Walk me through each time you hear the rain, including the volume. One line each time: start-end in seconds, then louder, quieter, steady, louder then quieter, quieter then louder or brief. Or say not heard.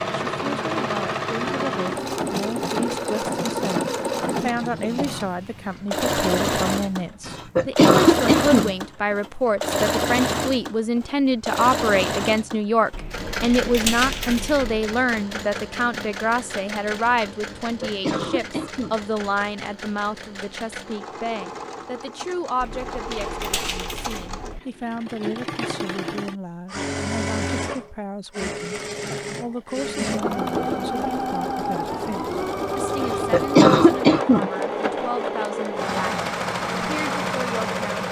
not heard.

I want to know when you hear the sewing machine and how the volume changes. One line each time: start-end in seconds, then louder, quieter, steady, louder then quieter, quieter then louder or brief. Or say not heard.
0.0-38.0 quieter then louder.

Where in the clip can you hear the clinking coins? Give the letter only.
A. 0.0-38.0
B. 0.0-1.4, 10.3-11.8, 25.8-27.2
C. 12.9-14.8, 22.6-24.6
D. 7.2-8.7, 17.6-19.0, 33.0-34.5
C.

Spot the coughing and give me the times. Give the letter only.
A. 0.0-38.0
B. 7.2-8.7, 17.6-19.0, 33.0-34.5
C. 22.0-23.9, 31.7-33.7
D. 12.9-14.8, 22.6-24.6
B.